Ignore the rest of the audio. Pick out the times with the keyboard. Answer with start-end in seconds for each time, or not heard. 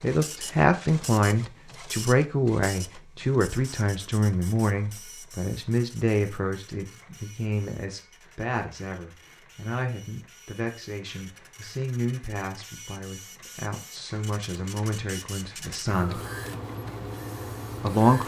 not heard.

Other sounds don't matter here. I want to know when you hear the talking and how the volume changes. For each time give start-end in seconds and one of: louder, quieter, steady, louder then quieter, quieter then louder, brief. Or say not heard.
0.0-16.2 quieter
17.8-18.2 brief.